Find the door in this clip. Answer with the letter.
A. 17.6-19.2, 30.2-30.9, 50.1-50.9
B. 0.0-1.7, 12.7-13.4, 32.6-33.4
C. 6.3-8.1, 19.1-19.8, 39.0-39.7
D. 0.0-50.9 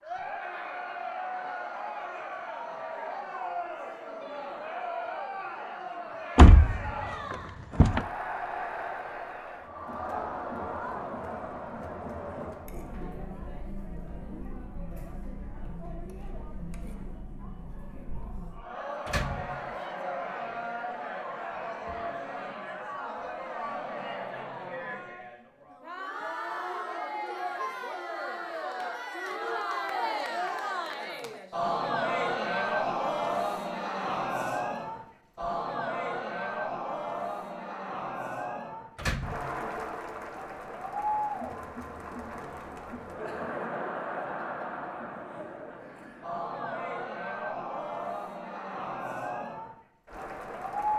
C.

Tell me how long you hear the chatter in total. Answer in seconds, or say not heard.
51 s.